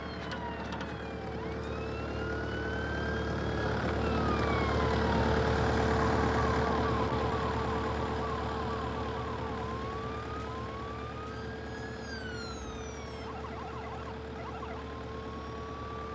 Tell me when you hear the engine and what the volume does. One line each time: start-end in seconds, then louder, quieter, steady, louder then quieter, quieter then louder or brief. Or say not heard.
0.0-16.1 louder then quieter.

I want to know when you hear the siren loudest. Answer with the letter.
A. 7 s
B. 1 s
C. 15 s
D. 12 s
A.